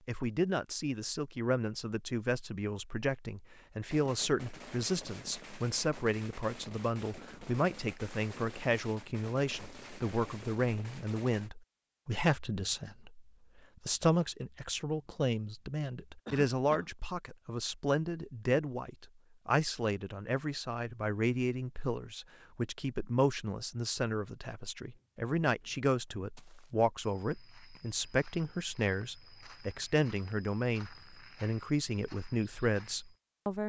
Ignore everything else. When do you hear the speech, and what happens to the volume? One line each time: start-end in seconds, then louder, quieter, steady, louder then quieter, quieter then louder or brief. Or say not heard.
0.1-33.6 steady.